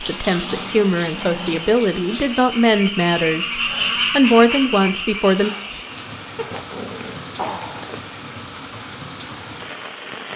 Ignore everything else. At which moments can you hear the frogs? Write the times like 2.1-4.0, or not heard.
0.0-6.0.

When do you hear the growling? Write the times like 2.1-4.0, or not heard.
0.5-1.7, 6.3-8.1.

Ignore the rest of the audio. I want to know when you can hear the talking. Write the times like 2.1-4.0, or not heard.
0.0-5.5.